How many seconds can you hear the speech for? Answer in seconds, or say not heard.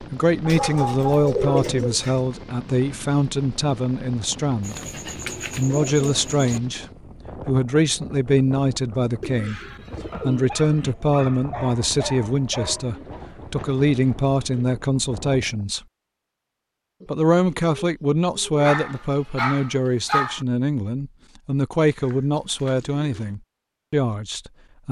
22 s.